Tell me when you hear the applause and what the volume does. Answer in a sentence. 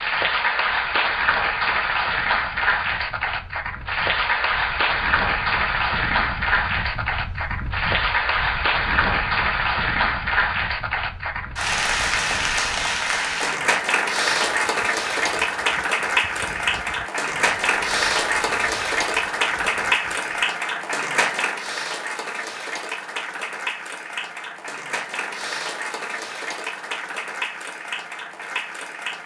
The applause can be heard from 0.0 to 29.2 s, getting quieter.